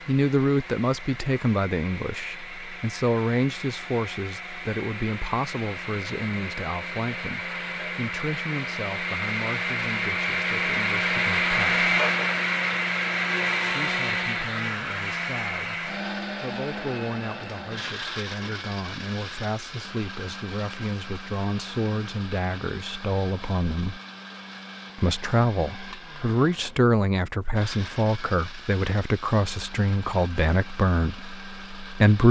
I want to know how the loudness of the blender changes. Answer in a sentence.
The loudness of the blender goes up, then down.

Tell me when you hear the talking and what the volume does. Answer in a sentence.
You can hear the talking from 0.1 to 11.8 s, getting quieter; from 13.7 to 24.0 s, getting louder; and from 24.9 to 32.2 s, at a steady volume.